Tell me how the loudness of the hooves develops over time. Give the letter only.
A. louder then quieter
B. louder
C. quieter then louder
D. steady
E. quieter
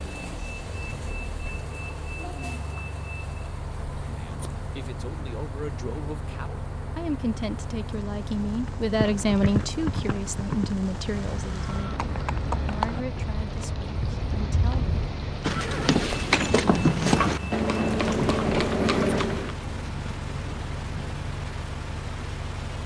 B.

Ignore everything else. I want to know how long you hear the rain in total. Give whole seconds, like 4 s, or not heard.
23 s.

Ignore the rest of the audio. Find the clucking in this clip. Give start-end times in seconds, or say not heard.
not heard.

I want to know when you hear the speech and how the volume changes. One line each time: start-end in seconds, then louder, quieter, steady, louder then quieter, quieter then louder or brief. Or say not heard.
4.0-14.9 louder then quieter.